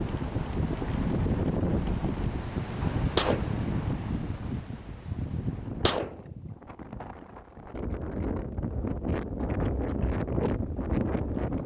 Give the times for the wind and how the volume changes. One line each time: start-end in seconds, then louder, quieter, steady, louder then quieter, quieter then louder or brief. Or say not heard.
0.0-11.6 quieter then louder.